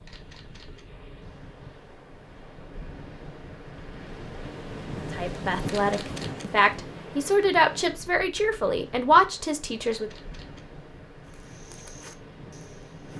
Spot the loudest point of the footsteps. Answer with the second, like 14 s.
12 s.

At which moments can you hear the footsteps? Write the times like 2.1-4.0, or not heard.
11.2-13.1.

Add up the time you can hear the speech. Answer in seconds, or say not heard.
5 s.